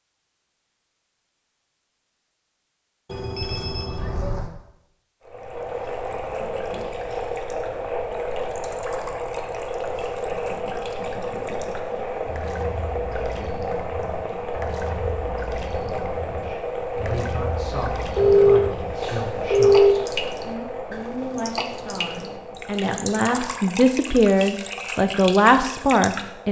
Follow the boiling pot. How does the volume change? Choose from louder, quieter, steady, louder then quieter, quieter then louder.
quieter.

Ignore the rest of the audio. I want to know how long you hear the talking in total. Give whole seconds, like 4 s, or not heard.
10 s.